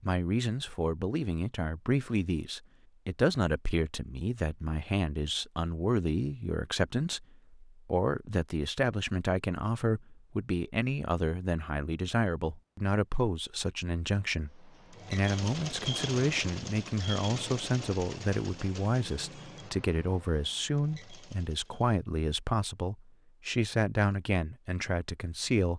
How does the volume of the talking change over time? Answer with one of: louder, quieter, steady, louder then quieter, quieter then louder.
steady.